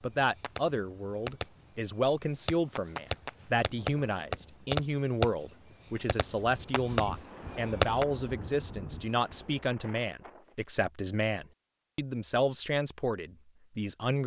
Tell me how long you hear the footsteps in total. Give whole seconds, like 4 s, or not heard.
not heard.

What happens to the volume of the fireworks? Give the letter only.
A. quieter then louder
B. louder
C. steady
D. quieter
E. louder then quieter
E.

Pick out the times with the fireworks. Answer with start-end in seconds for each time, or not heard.
0.1-8.1.